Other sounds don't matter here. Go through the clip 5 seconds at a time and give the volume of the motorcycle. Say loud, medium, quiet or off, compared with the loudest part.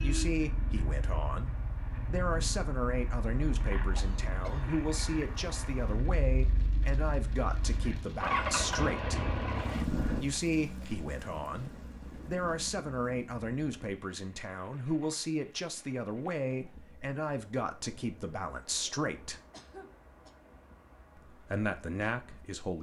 medium, loud, medium, off, off.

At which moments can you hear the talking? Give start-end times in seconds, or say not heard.
0.0-9.2, 10.2-19.4, 21.1-22.7.